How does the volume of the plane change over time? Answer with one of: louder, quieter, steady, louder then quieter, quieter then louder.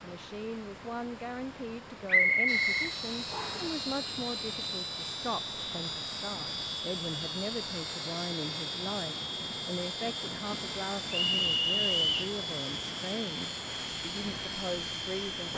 steady.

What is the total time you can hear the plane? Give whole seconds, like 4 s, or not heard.
13 s.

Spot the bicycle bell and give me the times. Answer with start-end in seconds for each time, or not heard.
not heard.